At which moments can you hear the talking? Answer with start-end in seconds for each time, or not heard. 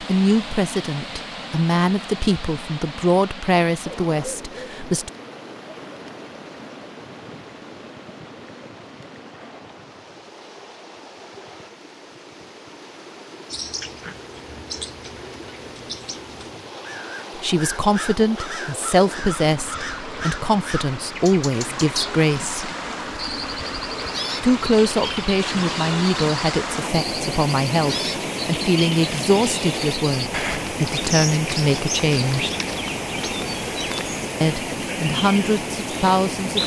0.0-5.1, 17.4-22.7, 24.4-32.5, 34.4-36.6.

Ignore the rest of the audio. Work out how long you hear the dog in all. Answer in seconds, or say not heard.
not heard.